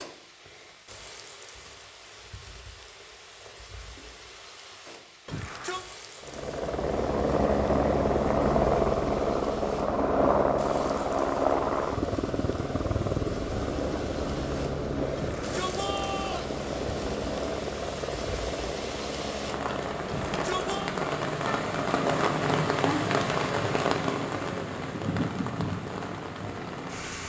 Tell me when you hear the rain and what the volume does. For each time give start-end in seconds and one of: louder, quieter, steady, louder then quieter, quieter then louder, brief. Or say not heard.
0.0-27.2 louder.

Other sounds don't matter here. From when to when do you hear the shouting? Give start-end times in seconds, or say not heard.
5.2-5.8, 15.2-16.6, 20.1-20.9.